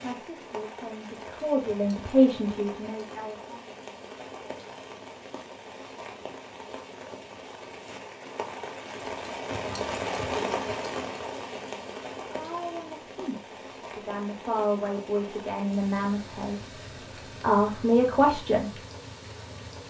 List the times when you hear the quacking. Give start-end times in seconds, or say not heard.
not heard.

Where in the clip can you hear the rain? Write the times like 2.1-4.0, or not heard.
0.0-19.8.